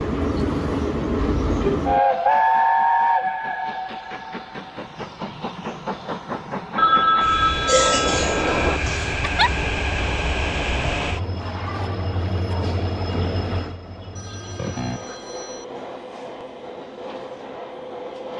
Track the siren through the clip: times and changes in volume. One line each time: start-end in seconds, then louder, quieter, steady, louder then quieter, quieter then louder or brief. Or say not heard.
not heard.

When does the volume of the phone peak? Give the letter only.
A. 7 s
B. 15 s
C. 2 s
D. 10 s
A.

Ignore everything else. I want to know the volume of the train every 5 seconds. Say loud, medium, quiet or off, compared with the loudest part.
loud, medium, medium, quiet.